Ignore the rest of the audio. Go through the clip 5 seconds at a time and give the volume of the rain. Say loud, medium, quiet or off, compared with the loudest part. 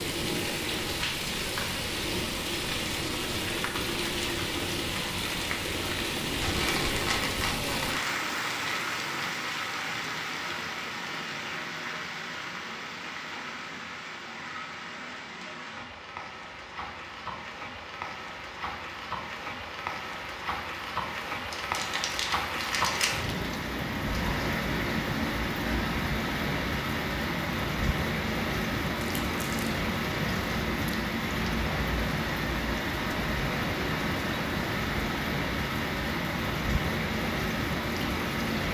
loud, loud, medium, medium, loud, loud, loud, loud.